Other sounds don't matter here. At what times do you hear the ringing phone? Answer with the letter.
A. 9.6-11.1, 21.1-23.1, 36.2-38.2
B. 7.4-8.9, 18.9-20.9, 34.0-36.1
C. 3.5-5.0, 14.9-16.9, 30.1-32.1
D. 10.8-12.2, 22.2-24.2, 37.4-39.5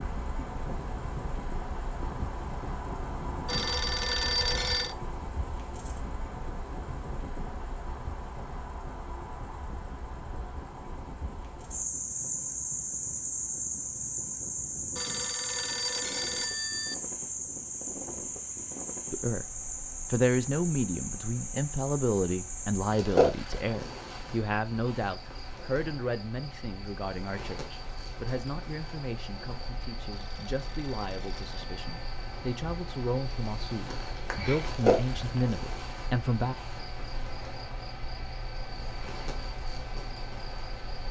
C.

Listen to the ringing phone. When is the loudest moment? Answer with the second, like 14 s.
4 s.